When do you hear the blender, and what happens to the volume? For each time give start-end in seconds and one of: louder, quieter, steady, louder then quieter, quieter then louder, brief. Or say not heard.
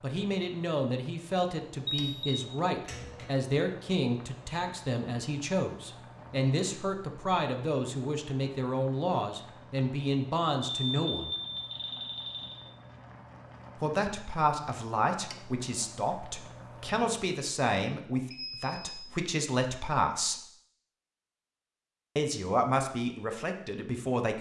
not heard.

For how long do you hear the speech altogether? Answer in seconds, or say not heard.
20 s.